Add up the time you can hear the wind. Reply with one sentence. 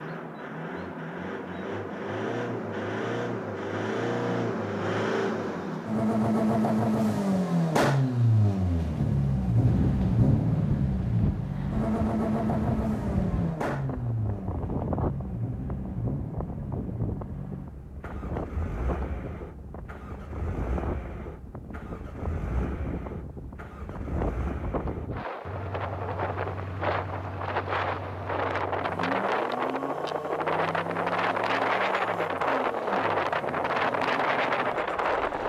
You can hear the wind for 26 seconds altogether.